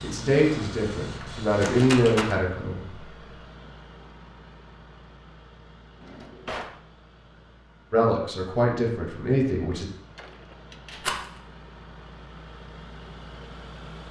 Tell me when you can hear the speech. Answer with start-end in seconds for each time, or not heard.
0.0-3.0, 7.9-9.8.